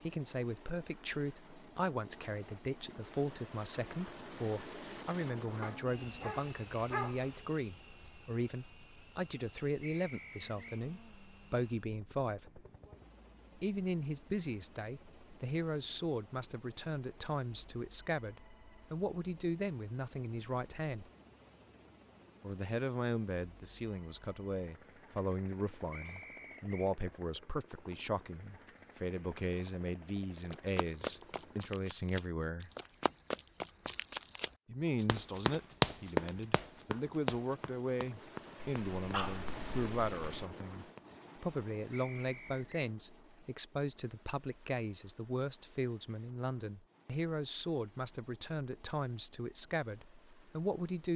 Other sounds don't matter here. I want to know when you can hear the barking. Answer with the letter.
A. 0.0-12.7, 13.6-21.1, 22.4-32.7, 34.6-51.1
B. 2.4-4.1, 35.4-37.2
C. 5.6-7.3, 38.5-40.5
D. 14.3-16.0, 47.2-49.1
C.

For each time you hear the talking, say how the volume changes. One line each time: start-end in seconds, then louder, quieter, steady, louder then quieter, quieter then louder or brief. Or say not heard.
0.0-12.7 steady
13.6-21.1 steady
22.4-32.7 steady
34.6-51.1 steady.